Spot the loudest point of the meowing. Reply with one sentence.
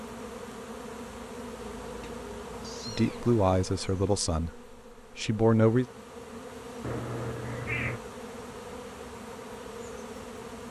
The volume of the meowing peaks at 8 seconds.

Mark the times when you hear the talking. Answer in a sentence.
You can hear the talking from 2.9 to 5.8 s.